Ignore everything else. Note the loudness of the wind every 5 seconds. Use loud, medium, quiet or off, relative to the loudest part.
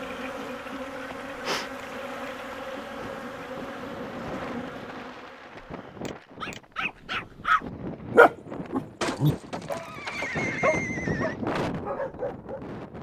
medium, medium, loud.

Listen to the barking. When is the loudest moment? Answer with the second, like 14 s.
8 s.